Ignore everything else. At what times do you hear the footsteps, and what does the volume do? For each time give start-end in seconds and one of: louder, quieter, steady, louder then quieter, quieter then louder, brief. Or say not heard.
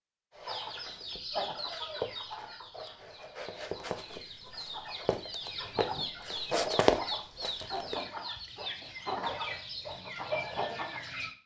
0.3-8.0 quieter then louder.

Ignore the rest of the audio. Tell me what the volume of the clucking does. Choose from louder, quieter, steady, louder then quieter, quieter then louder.
quieter then louder.